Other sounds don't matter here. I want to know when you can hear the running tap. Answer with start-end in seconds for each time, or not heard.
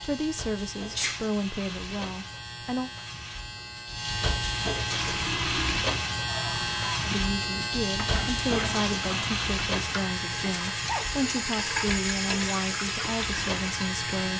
4.9-14.3.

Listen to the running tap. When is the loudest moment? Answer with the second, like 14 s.
12 s.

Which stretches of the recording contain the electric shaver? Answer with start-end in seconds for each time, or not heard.
0.0-14.3.